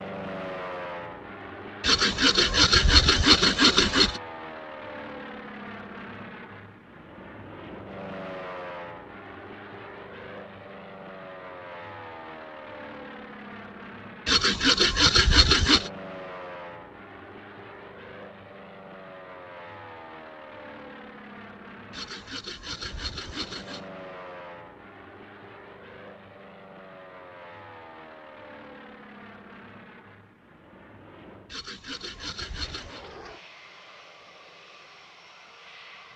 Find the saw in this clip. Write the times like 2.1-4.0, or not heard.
1.8-4.2, 14.2-15.9, 21.9-23.8, 31.5-33.0.